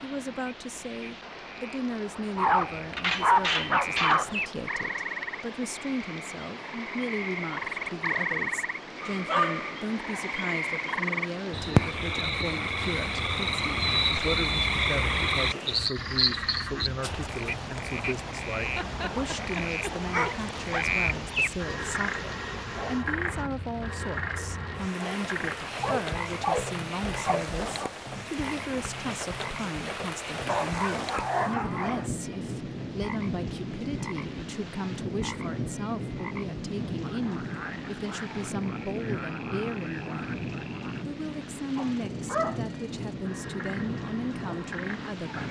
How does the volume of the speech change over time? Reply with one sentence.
The volume of the speech stays about the same.